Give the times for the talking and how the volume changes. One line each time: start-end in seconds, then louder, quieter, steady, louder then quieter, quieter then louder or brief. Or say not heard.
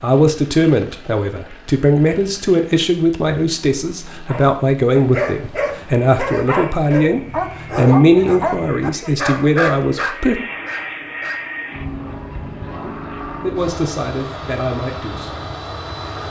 0.0-10.4 steady
12.8-15.4 brief.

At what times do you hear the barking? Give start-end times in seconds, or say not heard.
4.2-11.6.